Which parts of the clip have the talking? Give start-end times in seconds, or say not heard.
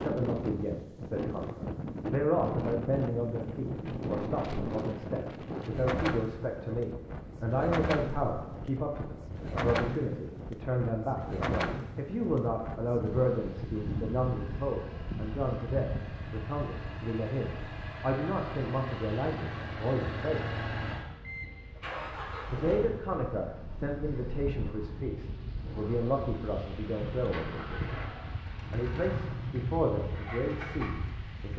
0.0-20.4, 22.5-27.9, 28.7-31.5.